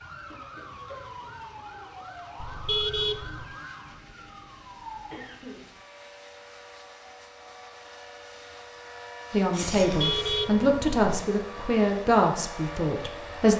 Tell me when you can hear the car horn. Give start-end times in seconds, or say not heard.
2.4-3.5, 9.8-11.2.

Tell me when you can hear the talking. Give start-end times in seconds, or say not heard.
9.3-13.5.